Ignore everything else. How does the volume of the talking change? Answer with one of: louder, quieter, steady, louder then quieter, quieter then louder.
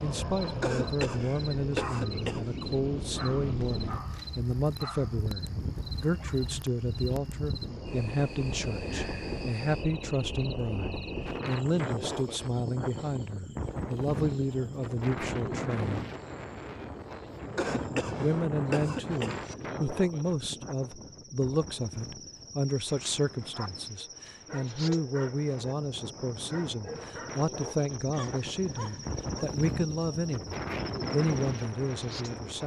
steady.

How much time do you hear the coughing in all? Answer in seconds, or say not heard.
4 s.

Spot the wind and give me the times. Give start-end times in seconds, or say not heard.
0.0-32.6.